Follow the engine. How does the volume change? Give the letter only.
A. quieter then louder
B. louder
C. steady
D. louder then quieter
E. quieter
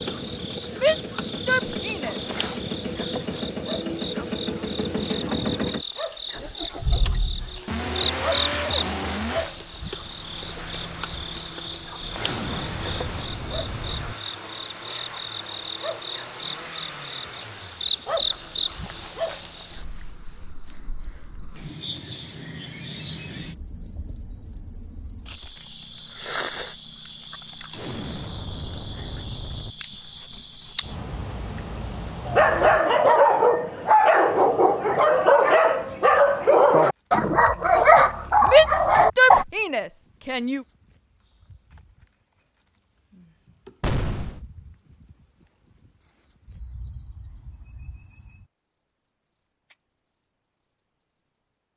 E.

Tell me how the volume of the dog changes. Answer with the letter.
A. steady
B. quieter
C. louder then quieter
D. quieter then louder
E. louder
A.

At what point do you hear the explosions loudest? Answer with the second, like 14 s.
44 s.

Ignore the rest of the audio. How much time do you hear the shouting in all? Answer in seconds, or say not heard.
4 s.